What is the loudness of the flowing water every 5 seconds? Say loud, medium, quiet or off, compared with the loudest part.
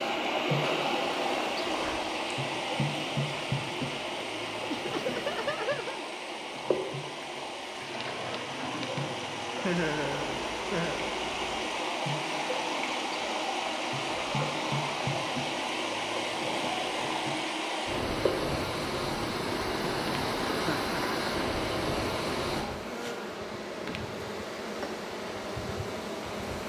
loud, medium, loud, loud, loud, off.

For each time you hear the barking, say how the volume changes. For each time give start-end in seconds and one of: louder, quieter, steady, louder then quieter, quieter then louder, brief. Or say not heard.
not heard.